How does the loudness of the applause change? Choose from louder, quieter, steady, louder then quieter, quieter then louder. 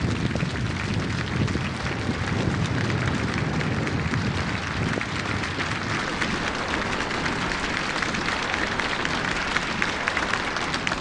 louder.